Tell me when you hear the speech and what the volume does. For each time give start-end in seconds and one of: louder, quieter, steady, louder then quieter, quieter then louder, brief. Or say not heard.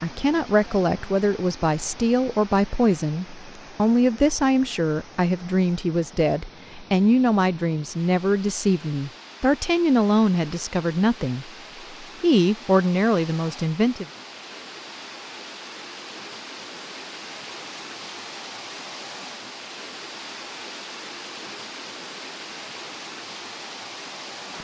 0.0-14.1 steady.